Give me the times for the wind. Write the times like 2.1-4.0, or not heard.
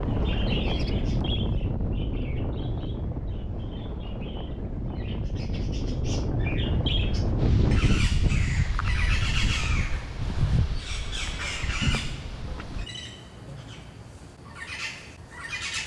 0.0-12.8.